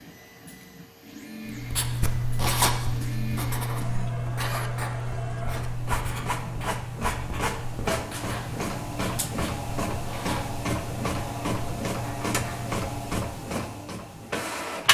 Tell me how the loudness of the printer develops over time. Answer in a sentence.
The loudness of the printer goes up.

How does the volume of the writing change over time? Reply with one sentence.
The volume of the writing goes down.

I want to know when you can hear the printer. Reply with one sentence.
The printer can be heard from 0.0 to 14.9 s.